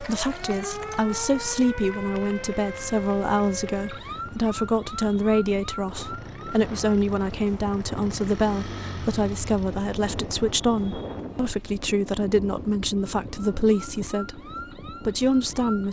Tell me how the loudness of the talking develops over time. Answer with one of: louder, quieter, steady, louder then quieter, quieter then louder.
steady.